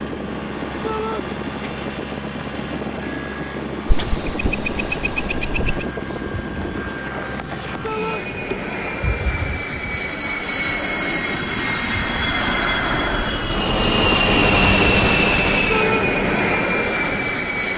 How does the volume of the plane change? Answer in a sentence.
The volume of the plane goes up.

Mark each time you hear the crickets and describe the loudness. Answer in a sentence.
You can hear the crickets from 0.2 to 17.7 s, getting quieter.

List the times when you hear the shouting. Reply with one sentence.
The shouting can be heard from 0.8 to 1.2 s, from 7.8 to 8.2 s and from 15.7 to 16.1 s.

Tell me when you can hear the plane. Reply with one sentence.
The plane can be heard from 0.0 to 17.7 s.